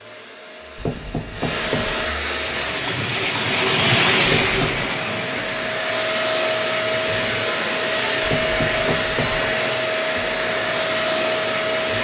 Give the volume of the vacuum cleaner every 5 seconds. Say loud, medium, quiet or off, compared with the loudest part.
medium, loud, loud.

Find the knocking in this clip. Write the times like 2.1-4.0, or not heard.
0.8-2.0, 4.2-4.8, 8.2-9.5.